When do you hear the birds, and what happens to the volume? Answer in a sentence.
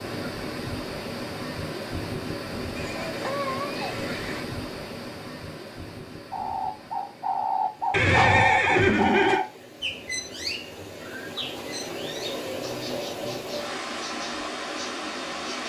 The birds can be heard from 6.3 to 15.6 s, getting quieter.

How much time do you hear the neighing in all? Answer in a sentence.
The neighing can be heard for 3 seconds in total.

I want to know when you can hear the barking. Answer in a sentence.
The barking can't be heard in this clip.